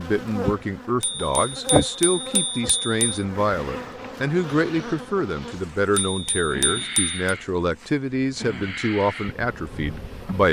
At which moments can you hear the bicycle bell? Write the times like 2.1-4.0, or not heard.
1.0-3.2, 6.0-7.2.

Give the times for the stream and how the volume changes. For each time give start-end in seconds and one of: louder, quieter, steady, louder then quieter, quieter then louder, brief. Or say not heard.
not heard.